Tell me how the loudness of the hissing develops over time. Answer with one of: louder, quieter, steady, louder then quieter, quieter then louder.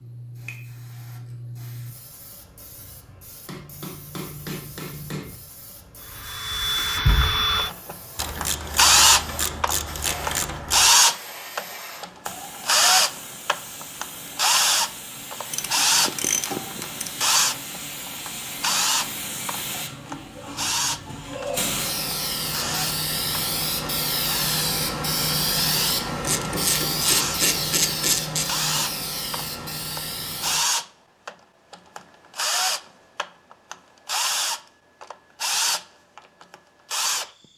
louder.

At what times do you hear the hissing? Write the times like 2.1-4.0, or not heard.
0.0-30.6.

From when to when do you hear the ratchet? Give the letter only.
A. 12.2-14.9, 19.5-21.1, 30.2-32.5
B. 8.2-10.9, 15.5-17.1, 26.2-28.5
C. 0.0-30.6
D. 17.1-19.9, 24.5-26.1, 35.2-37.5
B.